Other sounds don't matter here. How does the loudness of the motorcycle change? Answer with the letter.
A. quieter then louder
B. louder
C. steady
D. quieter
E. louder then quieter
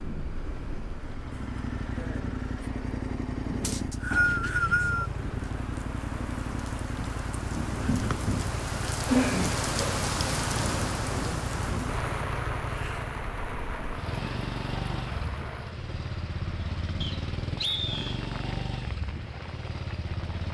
C.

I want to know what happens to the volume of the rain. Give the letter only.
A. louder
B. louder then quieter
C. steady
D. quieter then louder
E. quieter
B.